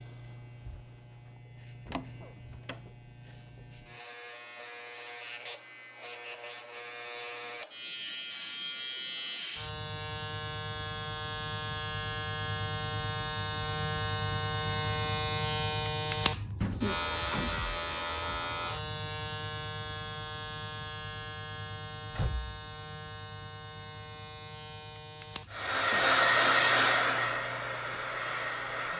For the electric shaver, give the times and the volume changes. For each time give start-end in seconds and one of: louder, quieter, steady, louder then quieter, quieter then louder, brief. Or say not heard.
0.0-28.9 louder then quieter.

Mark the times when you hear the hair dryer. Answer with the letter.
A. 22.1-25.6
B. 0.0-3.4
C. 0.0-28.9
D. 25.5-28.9
D.